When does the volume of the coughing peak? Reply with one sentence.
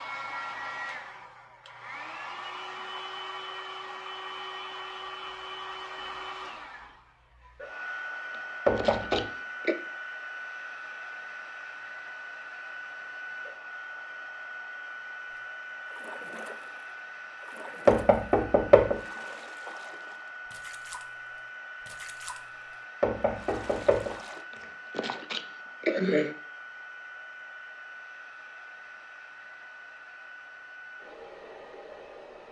The loudest moment of the coughing is at 26 seconds.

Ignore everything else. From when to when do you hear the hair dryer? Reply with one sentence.
The hair dryer can be heard from 0.0 to 32.4 s.